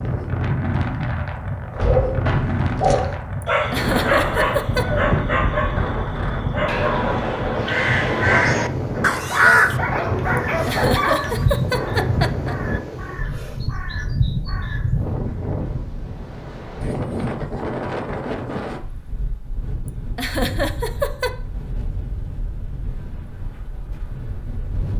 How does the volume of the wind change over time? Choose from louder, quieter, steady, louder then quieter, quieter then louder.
quieter.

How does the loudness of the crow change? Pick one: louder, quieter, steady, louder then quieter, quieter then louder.
louder then quieter.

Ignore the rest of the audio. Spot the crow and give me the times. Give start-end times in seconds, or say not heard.
4.7-15.2.